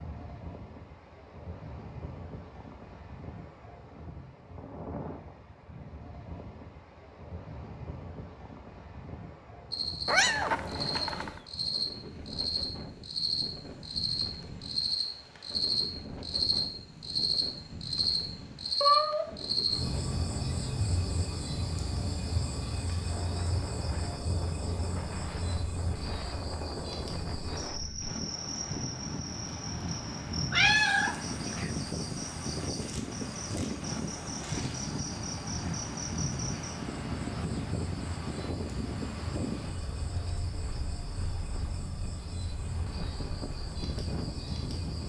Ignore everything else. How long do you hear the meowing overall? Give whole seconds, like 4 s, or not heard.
3 s.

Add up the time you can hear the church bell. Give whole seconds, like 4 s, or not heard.
not heard.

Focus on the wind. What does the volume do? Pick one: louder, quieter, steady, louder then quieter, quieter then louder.
louder.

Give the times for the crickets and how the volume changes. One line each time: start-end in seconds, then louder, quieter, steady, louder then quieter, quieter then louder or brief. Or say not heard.
9.7-45.0 quieter.